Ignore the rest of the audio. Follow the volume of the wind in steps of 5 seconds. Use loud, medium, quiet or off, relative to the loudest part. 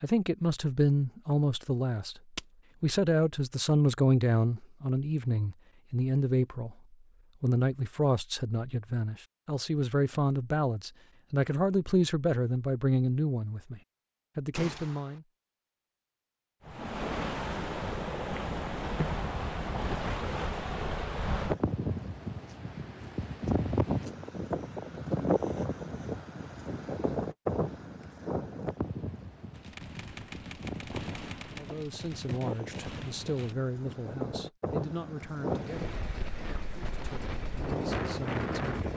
off, off, off, loud, loud, loud, medium, loud.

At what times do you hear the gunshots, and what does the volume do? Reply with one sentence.
The gunshots can be heard briefly from 14.5 to 15.2 s; and from 29.5 to 33.5 s, at a steady volume.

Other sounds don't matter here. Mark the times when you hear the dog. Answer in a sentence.
The dog can't be heard in this clip.